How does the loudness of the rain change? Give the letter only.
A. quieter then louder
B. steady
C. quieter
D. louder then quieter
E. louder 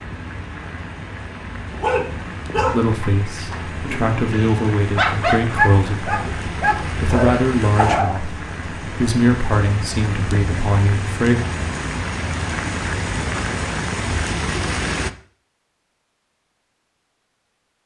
E.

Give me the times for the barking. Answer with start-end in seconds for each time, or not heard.
1.7-8.3.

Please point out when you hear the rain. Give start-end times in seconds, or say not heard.
0.0-15.1.